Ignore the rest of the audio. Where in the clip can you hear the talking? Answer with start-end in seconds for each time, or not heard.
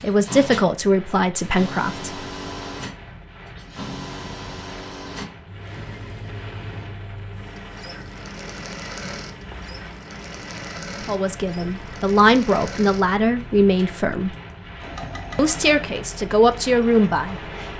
0.0-2.1, 11.1-14.3, 15.3-17.7.